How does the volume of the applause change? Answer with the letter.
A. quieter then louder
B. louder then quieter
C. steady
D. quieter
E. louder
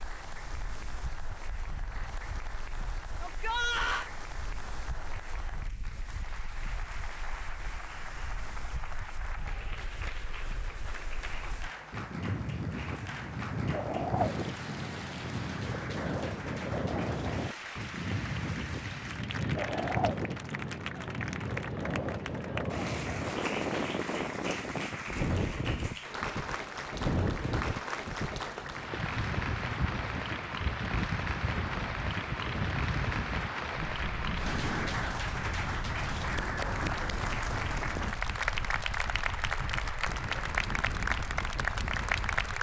E.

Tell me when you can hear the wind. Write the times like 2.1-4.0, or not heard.
0.0-42.5.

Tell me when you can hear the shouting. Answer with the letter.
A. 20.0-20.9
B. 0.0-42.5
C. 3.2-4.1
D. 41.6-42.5
C.